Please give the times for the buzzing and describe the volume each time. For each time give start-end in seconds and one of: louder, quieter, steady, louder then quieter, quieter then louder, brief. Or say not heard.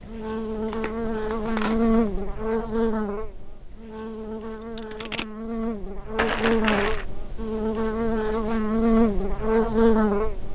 0.0-10.5 quieter then louder.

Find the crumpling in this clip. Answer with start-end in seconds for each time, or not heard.
0.7-1.9, 6.2-7.0.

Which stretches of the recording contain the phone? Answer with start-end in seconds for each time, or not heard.
4.3-5.2.